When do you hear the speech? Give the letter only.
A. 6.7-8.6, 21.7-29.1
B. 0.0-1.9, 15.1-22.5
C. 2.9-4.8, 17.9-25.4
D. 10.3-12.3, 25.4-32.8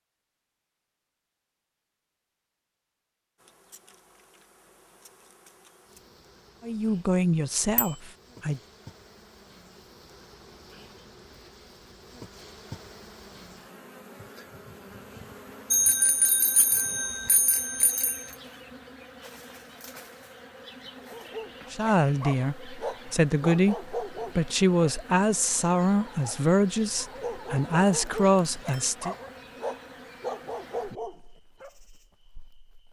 A.